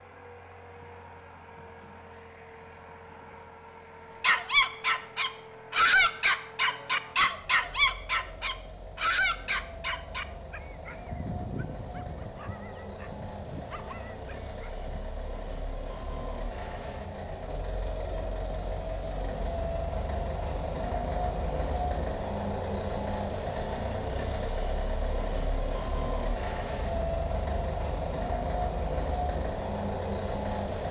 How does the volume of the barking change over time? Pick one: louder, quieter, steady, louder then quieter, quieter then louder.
quieter.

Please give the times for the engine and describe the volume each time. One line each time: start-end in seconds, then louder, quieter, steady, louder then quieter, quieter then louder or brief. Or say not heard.
0.0-30.8 louder.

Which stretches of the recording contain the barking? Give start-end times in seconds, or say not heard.
4.2-15.0.